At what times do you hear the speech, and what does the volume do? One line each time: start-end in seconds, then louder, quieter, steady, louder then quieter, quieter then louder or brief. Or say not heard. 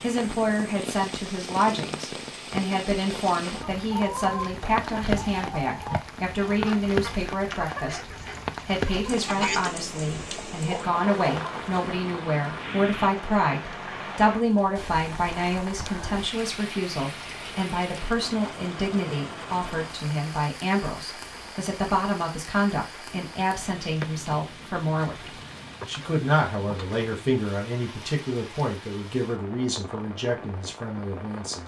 0.0-31.6 steady.